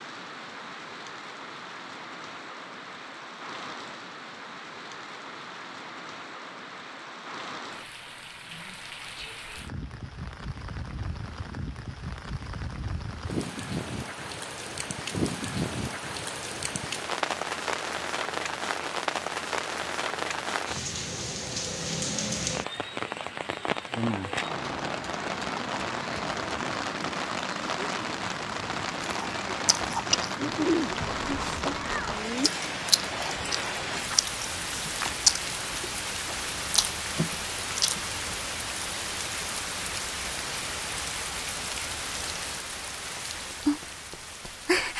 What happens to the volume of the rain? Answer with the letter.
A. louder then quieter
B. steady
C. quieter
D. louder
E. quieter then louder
D.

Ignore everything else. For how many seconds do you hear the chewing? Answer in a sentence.
The chewing can be heard for 9 seconds in total.